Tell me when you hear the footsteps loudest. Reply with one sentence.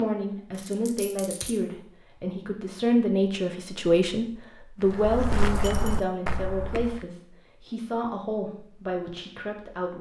The loudest moment of the footsteps is at 5 seconds.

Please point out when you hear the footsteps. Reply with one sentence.
The footsteps can be heard from 4.8 to 7.0 s.